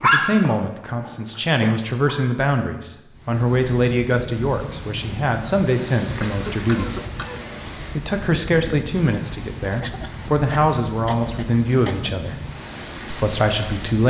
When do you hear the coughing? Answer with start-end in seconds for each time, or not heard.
1.0-1.8, 6.0-7.5, 9.8-12.1.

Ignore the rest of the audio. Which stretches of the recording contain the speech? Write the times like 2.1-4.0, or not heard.
0.0-7.0, 7.8-12.3, 13.1-14.0.